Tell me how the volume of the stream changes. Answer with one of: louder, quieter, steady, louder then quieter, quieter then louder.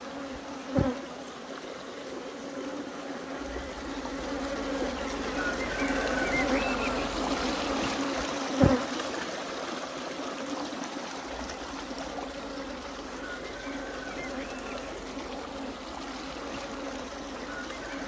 louder then quieter.